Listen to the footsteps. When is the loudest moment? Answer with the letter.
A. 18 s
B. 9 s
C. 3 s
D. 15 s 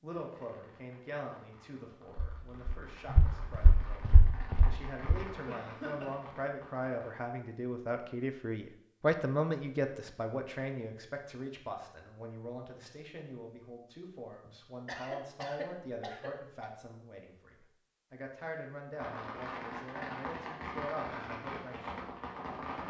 C.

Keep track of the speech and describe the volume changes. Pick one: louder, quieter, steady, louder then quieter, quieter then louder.
louder then quieter.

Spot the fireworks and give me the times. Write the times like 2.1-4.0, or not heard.
0.1-7.2, 18.9-22.8.